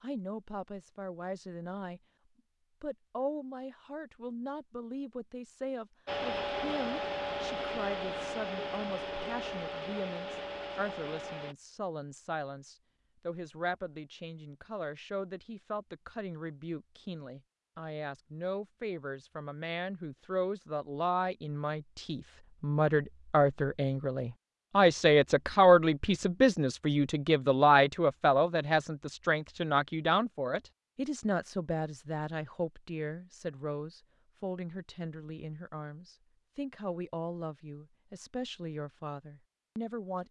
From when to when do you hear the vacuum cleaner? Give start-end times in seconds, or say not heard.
6.0-11.6.